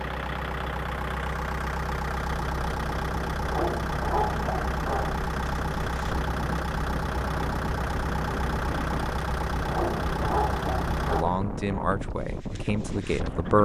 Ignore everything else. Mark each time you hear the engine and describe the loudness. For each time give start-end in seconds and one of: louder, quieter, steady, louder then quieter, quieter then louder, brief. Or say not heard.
0.0-11.2 steady.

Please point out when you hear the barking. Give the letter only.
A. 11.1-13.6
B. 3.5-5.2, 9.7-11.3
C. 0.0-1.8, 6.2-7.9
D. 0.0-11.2
B.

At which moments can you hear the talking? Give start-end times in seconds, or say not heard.
11.1-13.6.